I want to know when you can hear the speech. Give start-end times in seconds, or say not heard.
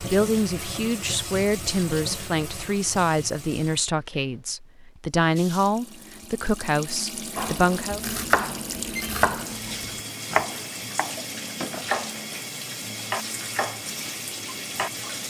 0.0-8.0.